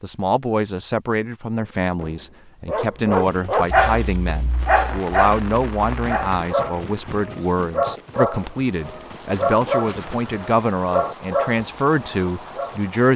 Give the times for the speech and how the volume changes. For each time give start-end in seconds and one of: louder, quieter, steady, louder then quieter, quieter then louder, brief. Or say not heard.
0.0-13.1 steady.